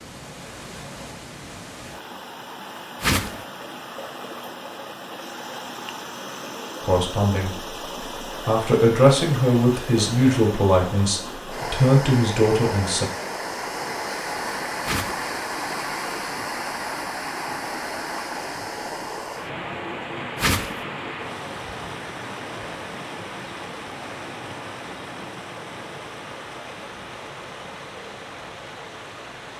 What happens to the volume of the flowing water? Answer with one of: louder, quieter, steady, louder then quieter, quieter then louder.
louder then quieter.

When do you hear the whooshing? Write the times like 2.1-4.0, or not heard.
3.0-3.5, 14.8-15.2, 20.4-20.8.